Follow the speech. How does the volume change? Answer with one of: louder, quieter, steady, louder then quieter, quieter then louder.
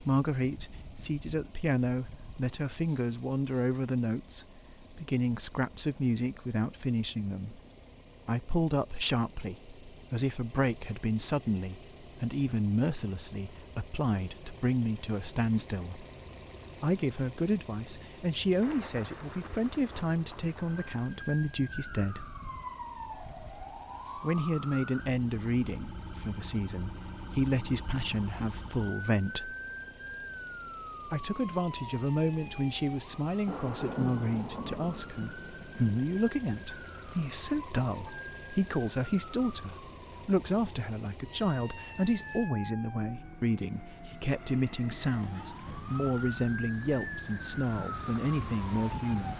steady.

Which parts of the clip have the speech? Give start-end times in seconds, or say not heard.
0.0-7.6, 8.2-16.1, 16.8-22.3, 24.1-29.6, 31.1-49.3.